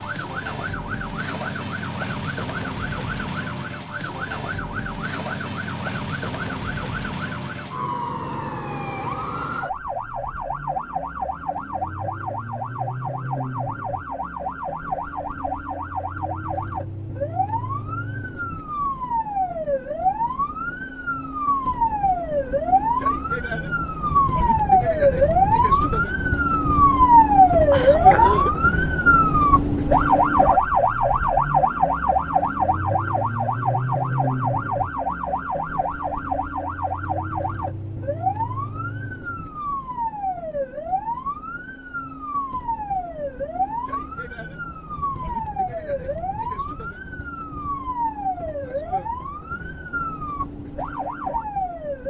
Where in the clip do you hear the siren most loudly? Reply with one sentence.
The volume of the siren peaks at 28 seconds.